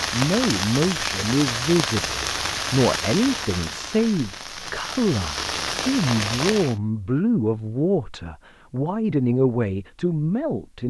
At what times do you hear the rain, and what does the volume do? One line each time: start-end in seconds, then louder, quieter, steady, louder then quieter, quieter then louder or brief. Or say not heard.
0.0-6.8 quieter then louder.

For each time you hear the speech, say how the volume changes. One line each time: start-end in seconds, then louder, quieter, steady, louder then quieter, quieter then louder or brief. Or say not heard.
0.1-10.8 steady.